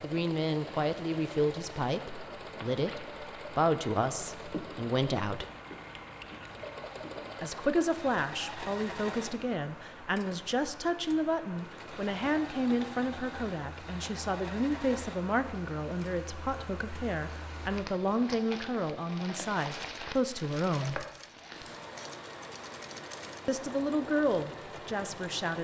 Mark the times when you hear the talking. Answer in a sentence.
The talking can be heard from 0.0 to 5.5 s, from 7.4 to 21.1 s and from 23.4 to 25.6 s.